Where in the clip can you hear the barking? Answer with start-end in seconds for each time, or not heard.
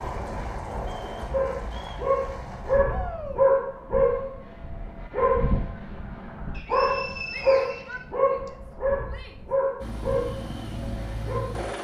1.3-11.6.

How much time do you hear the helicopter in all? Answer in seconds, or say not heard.
5 s.